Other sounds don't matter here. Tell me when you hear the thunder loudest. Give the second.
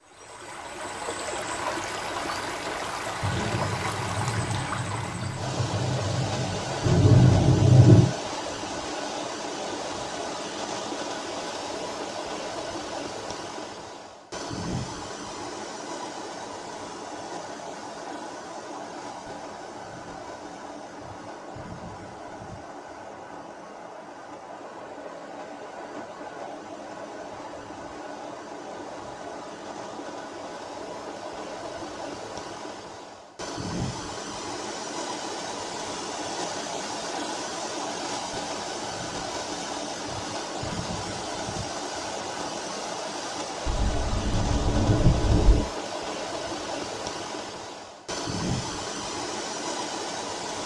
8 s.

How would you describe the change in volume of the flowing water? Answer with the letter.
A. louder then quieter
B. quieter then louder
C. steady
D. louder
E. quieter
B.